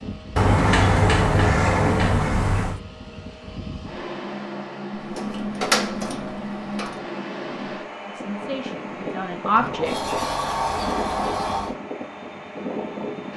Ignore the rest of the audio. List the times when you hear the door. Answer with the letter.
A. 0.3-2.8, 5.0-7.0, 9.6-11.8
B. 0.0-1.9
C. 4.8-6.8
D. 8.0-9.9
A.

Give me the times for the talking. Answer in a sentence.
You can hear the talking from 8.0 to 9.9 s.